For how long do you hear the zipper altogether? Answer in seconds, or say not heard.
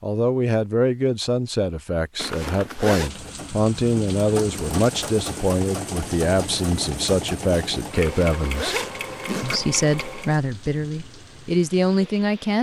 3 s.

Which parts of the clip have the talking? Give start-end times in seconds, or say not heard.
0.0-8.8, 9.4-12.5.